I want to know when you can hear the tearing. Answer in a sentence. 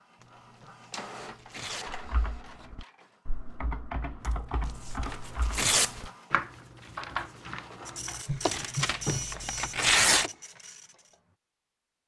You can hear the tearing from 0.2 to 2.0 s, from 4.2 to 6.0 s and from 8.2 to 10.3 s.